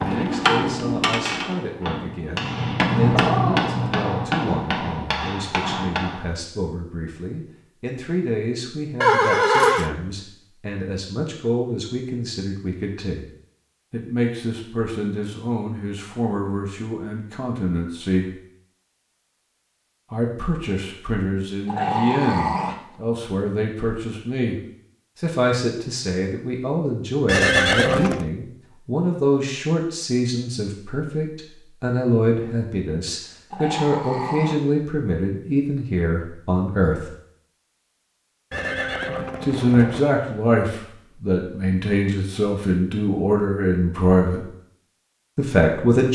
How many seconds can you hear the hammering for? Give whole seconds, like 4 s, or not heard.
6 s.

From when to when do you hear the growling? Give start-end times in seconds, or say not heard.
3.1-4.3, 21.6-22.8, 33.5-34.6.